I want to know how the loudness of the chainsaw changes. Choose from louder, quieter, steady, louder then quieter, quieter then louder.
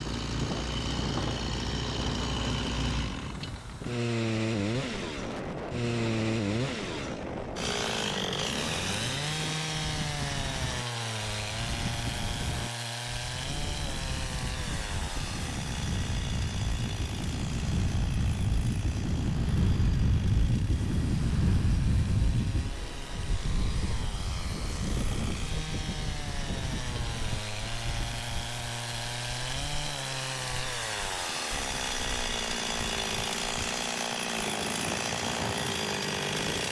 quieter then louder.